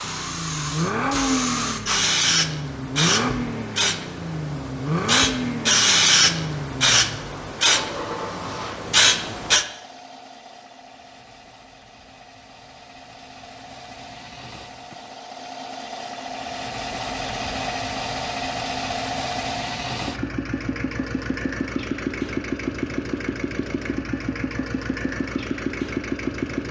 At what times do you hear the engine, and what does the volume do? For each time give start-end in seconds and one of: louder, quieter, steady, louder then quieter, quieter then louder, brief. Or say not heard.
0.0-26.6 quieter then louder.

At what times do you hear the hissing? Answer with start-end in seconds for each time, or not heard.
0.0-9.7.